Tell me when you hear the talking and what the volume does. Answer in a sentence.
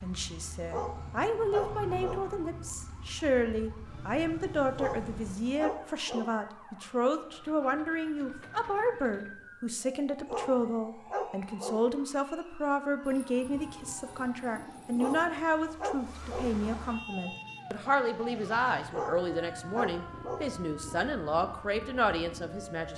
You can hear the talking from 0.0 to 22.9 s, at a steady volume.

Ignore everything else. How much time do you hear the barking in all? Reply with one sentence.
The barking can be heard for 8 seconds in total.